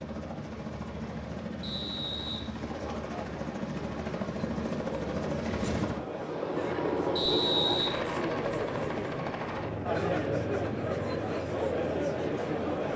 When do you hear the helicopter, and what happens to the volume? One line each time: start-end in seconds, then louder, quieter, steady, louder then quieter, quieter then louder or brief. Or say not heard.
0.0-12.9 louder then quieter.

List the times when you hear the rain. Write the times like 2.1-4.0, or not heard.
not heard.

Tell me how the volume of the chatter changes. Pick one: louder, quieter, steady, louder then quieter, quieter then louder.
louder.